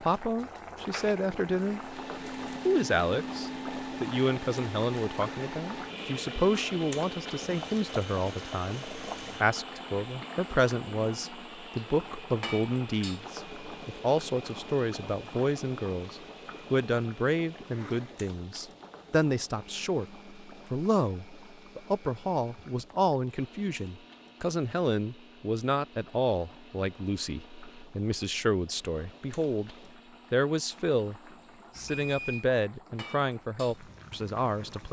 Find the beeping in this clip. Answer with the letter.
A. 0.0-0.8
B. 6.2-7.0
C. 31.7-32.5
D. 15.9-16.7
C.